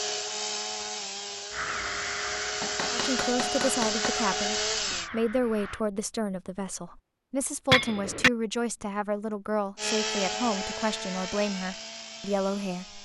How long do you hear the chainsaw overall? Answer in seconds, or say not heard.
8 s.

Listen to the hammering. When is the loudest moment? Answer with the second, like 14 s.
8 s.